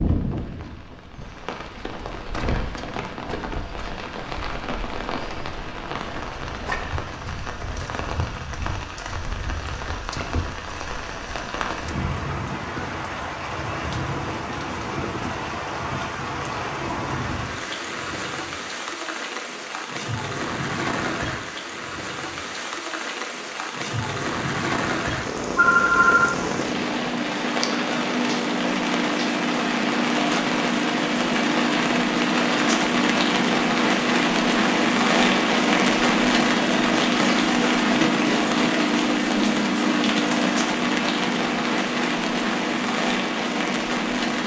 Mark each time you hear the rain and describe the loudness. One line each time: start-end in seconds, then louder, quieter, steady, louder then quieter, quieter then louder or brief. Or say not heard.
0.0-44.4 louder.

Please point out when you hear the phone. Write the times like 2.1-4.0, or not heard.
25.6-26.4.